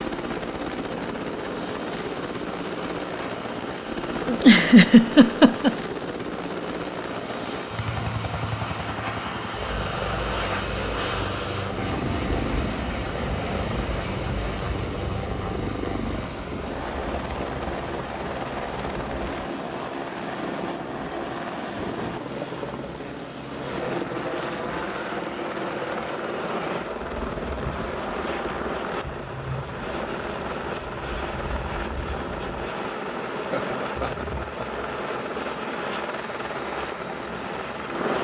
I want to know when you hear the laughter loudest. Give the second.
5 s.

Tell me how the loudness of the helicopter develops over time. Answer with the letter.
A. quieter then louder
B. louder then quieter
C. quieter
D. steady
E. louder
D.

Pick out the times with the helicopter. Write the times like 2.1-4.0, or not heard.
0.0-38.1.